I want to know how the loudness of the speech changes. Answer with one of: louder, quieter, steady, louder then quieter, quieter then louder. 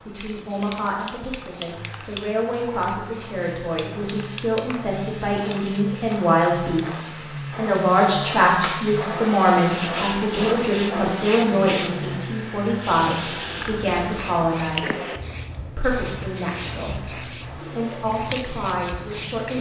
louder then quieter.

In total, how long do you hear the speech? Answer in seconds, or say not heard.
19 s.